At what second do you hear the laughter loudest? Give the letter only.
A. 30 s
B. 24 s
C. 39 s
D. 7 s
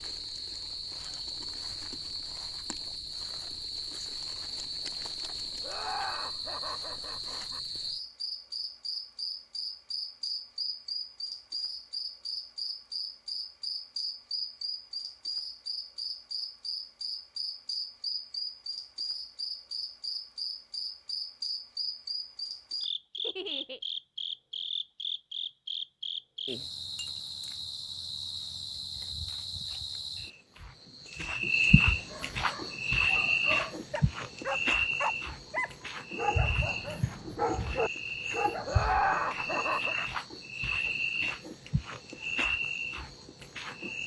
C.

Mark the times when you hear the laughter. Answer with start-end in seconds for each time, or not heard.
5.6-7.6, 23.2-23.8, 38.6-40.0.